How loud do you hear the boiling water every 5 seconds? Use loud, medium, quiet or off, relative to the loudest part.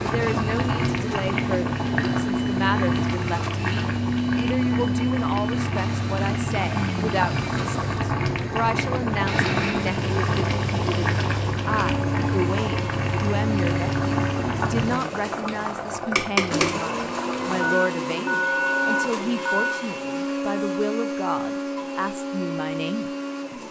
loud, loud, loud, loud, off.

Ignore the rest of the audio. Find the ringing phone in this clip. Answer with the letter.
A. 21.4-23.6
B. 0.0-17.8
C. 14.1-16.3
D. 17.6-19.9
D.